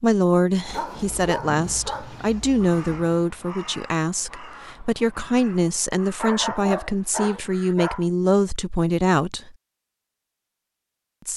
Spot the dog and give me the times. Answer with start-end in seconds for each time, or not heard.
0.7-3.0, 6.2-8.1.